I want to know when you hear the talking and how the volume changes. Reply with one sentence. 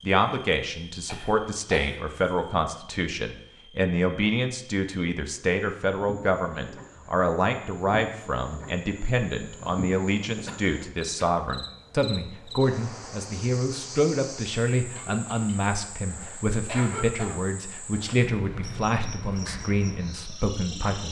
You can hear the talking from 0.0 to 21.0 s, at a steady volume.